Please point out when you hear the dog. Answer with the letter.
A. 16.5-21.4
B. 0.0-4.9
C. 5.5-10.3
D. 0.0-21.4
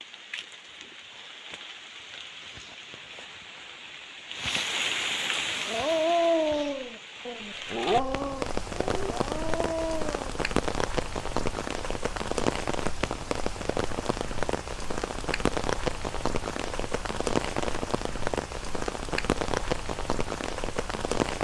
C.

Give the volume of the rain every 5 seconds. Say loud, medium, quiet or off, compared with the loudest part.
medium, loud, loud, loud, loud.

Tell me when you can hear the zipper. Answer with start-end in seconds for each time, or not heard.
not heard.